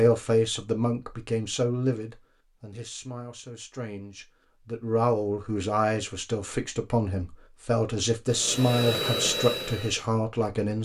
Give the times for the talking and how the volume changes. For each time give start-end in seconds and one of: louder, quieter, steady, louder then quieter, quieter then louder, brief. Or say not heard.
0.0-10.8 quieter then louder.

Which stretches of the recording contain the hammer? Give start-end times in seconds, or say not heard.
not heard.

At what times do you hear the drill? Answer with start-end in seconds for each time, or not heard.
8.2-10.8.